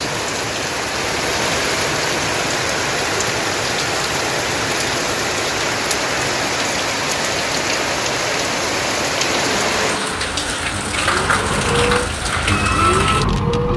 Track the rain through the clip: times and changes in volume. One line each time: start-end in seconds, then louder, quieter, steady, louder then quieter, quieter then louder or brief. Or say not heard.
0.0-13.7 steady.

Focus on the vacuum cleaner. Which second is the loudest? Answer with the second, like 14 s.
13 s.